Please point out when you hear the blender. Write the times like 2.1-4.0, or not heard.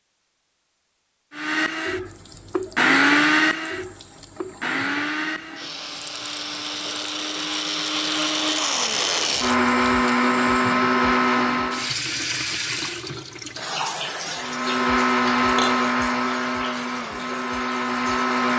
1.4-11.9, 14.3-18.5.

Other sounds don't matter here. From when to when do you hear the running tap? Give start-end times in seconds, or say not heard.
2.0-18.5.